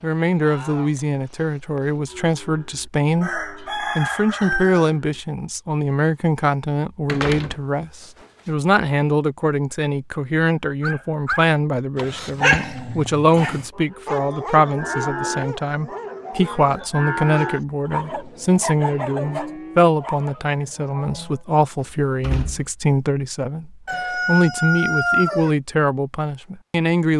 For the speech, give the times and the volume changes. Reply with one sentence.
The speech can be heard from 0.0 to 27.1 s, at a steady volume.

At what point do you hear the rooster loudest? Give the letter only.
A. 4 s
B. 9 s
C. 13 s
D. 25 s
D.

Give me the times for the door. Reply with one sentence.
The door can be heard from 7.0 to 7.6 s and from 21.8 to 22.7 s.